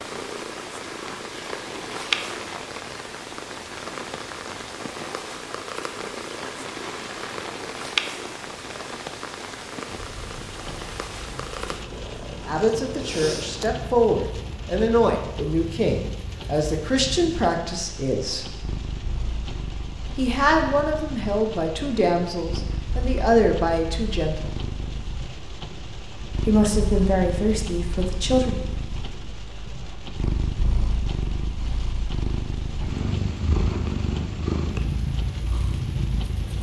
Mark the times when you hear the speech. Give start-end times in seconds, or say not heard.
12.4-18.4, 20.1-24.6, 26.4-28.6.